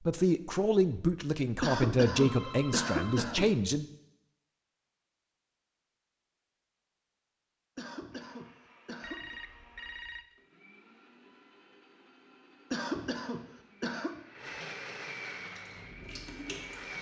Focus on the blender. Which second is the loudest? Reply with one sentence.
The loudest moment of the blender is at 15 seconds.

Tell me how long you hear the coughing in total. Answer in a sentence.
The coughing can be heard for 5 seconds in total.